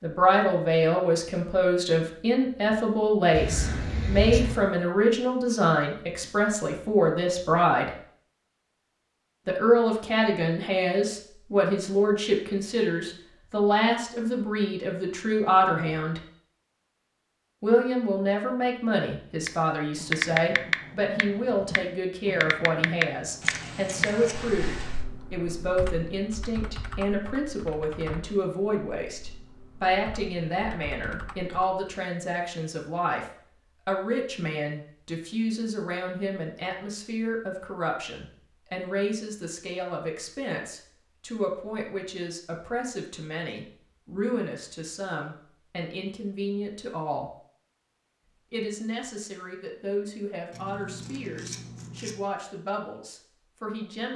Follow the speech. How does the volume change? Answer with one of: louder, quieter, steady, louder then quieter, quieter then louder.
quieter.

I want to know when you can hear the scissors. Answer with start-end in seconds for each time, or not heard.
3.3-4.6, 23.4-25.0, 50.5-52.1.